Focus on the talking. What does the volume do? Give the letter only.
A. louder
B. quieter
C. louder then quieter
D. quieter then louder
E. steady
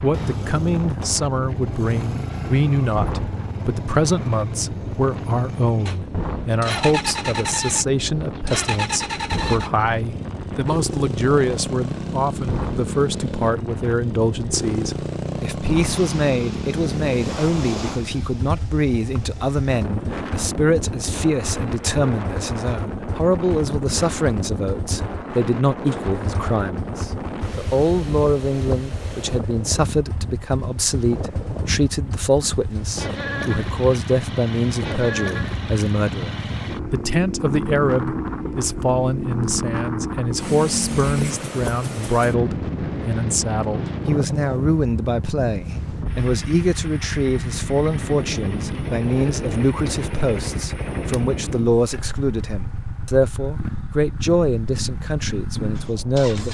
E.